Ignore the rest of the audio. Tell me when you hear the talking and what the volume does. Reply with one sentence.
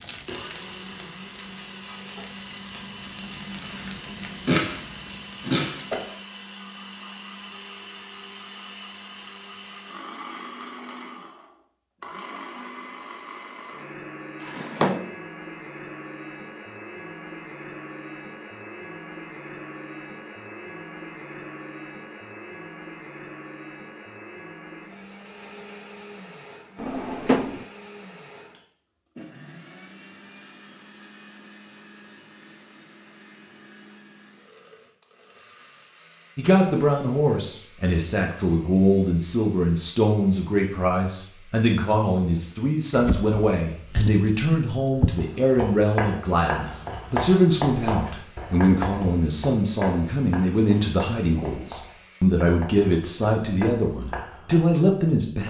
You can hear the talking from 36.4 to 55.4 s, at a steady volume.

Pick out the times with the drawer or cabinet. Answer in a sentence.
You can hear the drawer or cabinet from 14.4 to 15.1 s, from 26.8 to 27.6 s and from 42.9 to 45.3 s.